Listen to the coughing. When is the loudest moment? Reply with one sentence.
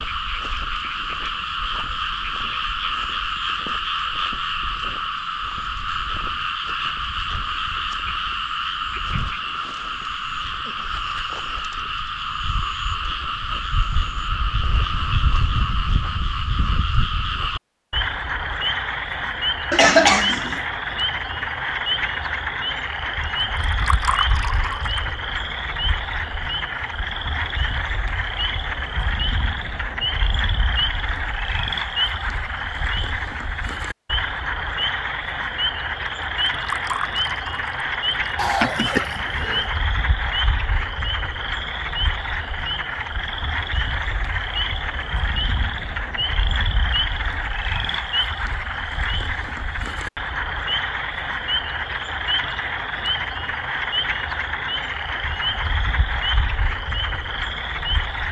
The volume of the coughing peaks at 20 seconds.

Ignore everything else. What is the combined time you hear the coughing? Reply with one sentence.
The coughing can be heard for 2 seconds in total.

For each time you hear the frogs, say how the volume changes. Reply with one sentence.
The frogs can be heard from 0.0 to 58.2 s, at a steady volume.